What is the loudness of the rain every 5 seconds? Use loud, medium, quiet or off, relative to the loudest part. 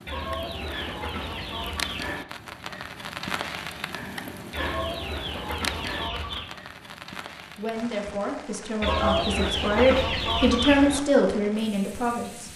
loud, loud, medium.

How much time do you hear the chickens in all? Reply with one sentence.
You can hear the chickens for 6 seconds altogether.